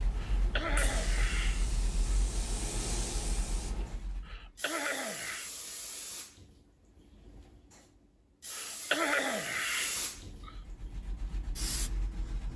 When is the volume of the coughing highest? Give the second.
9 s.